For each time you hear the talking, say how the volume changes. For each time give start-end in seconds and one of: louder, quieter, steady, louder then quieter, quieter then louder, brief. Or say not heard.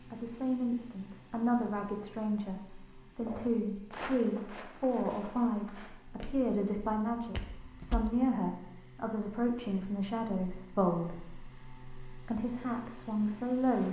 0.1-13.8 steady.